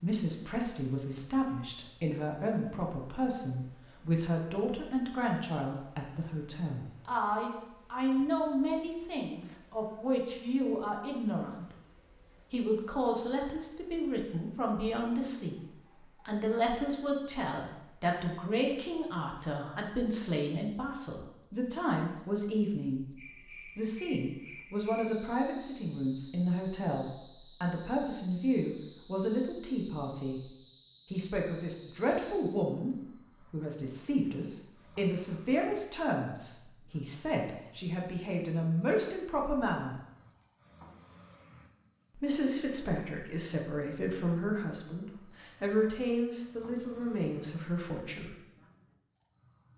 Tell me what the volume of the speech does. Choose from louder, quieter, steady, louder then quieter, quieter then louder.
steady.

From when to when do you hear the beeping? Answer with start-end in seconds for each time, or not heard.
not heard.